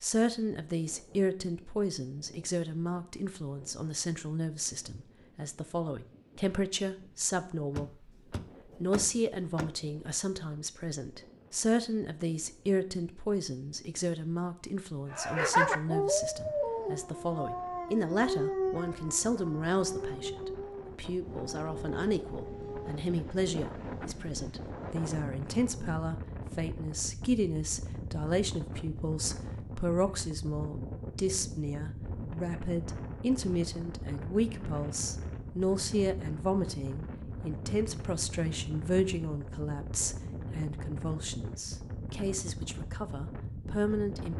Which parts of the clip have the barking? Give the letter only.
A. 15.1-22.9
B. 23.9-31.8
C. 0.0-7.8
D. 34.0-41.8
A.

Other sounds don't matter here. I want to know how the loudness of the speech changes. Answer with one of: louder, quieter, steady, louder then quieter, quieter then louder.
steady.